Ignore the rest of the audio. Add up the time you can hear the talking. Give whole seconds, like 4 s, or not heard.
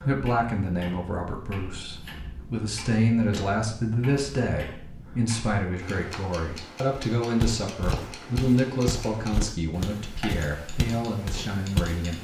12 s.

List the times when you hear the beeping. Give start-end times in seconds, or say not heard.
not heard.